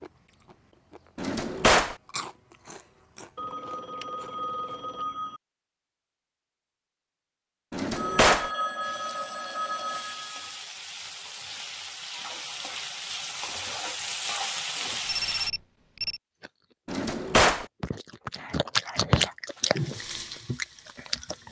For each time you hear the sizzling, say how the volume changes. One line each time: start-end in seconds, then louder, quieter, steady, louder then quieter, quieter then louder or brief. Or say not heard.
8.8-15.5 louder
19.5-21.4 brief.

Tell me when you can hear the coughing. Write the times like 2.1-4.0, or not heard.
not heard.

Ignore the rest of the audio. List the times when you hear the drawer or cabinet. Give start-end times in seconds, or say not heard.
1.1-1.9, 7.7-8.5, 16.9-17.6.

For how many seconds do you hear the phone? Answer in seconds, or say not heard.
6 s.